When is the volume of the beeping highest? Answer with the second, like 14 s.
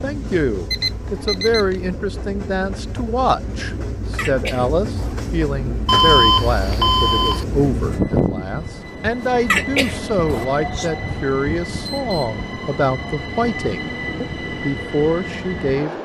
6 s.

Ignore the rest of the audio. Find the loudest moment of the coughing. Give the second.
10 s.